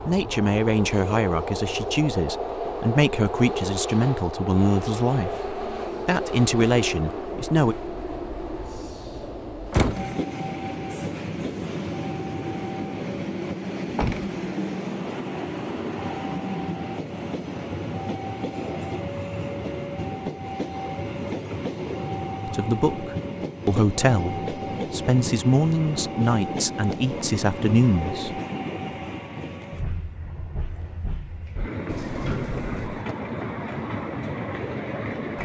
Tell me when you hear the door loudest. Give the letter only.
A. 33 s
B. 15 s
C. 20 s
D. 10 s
D.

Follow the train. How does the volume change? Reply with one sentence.
The loudness of the train stays about the same.